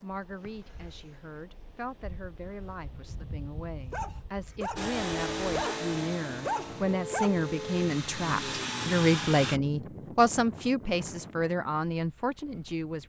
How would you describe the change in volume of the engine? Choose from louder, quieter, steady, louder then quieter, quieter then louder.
quieter then louder.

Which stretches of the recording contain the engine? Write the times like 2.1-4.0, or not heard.
4.8-9.6.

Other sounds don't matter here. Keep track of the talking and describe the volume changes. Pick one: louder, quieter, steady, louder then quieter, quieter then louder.
louder.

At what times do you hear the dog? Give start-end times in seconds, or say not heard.
3.9-7.4.